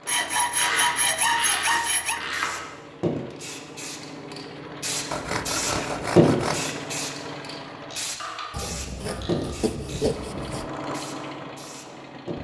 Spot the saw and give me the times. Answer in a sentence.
You can hear the saw from 0.1 to 2.2 s, from 5.1 to 6.7 s and from 8.5 to 10.7 s.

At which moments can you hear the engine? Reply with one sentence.
The engine can be heard from 0.0 to 8.2 s and from 9.9 to 12.3 s.